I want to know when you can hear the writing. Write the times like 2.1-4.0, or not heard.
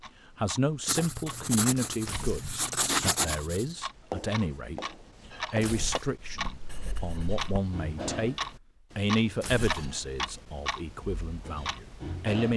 0.8-7.6.